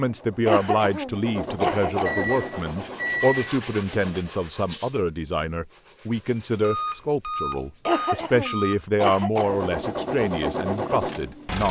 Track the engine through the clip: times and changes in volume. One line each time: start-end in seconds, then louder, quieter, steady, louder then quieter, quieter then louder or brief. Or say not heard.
0.0-4.3 louder then quieter
9.3-11.6 brief.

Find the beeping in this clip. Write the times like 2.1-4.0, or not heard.
2.0-3.5, 6.6-8.8.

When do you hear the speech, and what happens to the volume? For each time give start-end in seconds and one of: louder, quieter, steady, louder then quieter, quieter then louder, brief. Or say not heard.
0.0-11.6 steady.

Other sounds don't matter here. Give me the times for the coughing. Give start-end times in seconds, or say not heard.
0.5-2.3, 7.8-9.5.